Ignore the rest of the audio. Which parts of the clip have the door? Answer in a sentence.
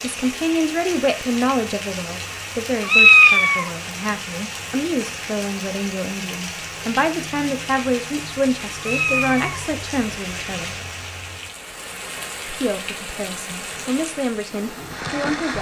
The door can't be heard in this clip.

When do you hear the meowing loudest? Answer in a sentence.
The loudest moment of the meowing is at 3 seconds.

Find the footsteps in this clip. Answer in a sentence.
You can't hear the footsteps here.